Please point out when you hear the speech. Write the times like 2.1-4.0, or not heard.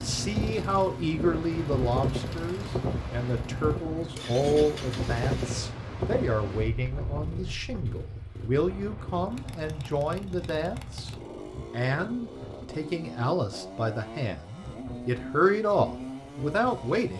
0.0-11.1, 11.7-17.1.